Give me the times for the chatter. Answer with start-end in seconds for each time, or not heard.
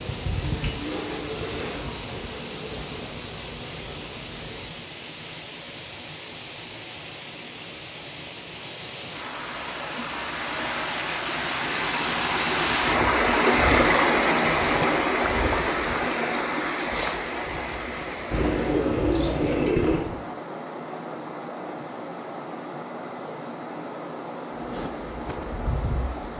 not heard.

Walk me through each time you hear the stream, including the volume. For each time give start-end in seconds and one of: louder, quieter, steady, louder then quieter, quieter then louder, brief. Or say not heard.
0.0-26.3 louder then quieter.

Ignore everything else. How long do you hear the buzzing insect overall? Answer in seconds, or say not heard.
7 s.